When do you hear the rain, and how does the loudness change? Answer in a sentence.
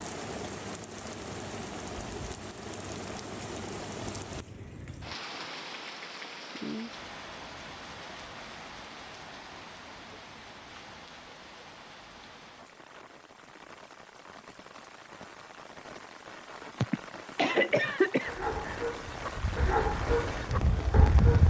The rain can be heard from 0.0 to 21.4 s, getting quieter then louder.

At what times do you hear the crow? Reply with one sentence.
The crow can be heard from 18.9 to 21.4 s.